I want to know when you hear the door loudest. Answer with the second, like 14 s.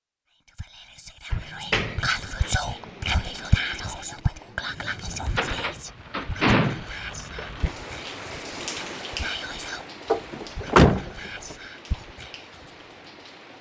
11 s.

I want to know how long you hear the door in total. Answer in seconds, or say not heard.
4 s.